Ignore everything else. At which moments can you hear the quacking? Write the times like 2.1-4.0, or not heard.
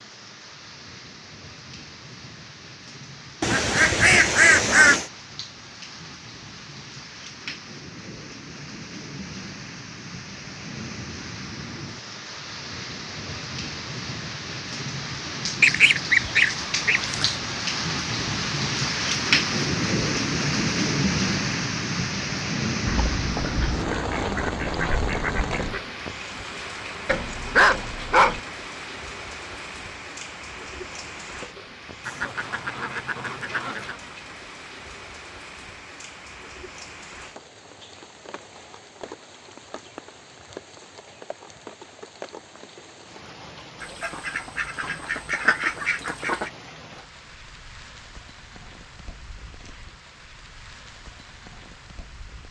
3.4-5.0, 15.6-17.4, 22.9-25.8, 32.0-34.0, 43.8-46.5.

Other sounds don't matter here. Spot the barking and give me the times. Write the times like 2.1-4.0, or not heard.
27.1-28.4.